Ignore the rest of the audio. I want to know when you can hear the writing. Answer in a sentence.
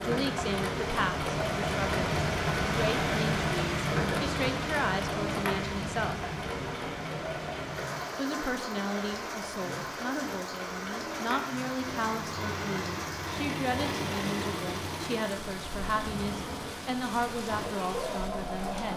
You can't hear the writing here.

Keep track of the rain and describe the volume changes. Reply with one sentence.
The loudness of the rain goes down.